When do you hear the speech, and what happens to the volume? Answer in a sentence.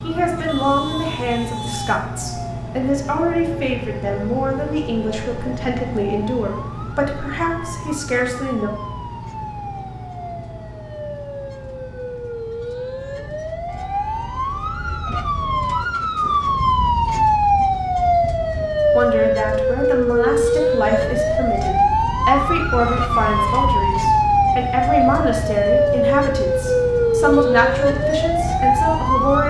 You can hear the speech from 0.0 to 8.7 s, at a steady volume; and from 18.9 to 29.4 s, at a steady volume.